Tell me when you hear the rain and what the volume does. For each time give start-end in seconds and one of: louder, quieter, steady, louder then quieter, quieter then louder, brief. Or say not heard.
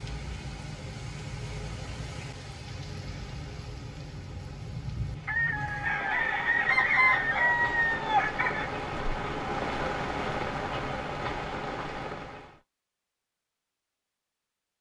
0.0-12.6 louder.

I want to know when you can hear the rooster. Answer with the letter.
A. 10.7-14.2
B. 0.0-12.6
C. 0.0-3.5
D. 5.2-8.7
D.